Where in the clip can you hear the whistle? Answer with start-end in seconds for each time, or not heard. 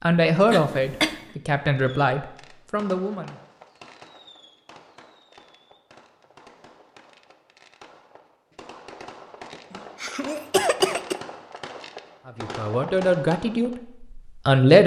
not heard.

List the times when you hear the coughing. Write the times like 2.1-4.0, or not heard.
0.5-1.2, 9.8-11.2.